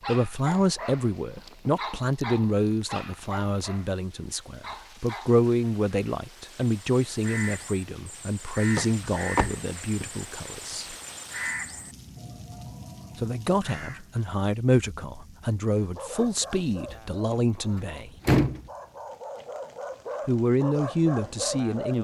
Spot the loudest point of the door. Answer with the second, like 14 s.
18 s.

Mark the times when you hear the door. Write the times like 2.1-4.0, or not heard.
1.4-2.0, 8.8-10.1, 16.9-18.7.